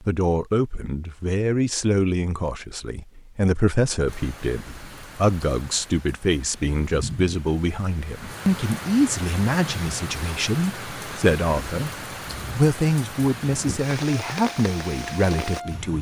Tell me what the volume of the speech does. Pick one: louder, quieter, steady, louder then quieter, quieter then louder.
steady.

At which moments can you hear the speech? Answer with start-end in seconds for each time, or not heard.
0.0-11.9, 12.6-15.9.